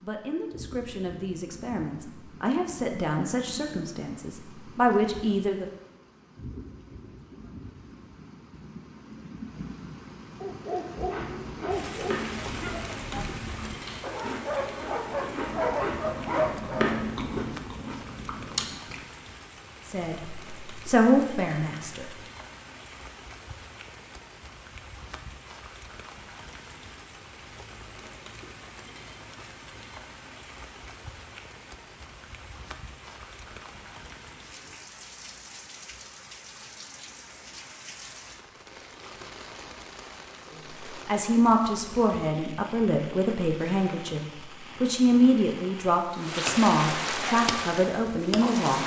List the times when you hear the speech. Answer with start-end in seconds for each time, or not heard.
0.0-5.7, 19.9-22.1, 41.0-48.8.